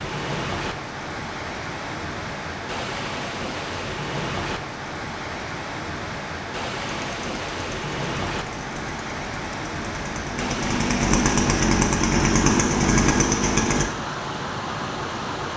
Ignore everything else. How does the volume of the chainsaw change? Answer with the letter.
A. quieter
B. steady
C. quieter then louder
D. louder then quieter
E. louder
E.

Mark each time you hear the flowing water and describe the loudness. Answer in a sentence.
You can hear the flowing water from 0.0 to 15.5 s, at a steady volume.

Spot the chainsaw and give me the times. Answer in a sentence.
The chainsaw can be heard from 6.8 to 13.8 s.